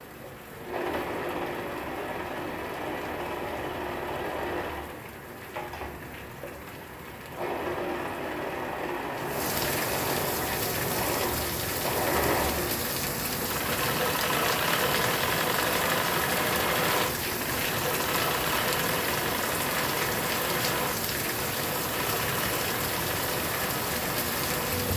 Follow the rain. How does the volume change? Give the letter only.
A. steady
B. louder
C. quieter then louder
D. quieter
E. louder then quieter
B.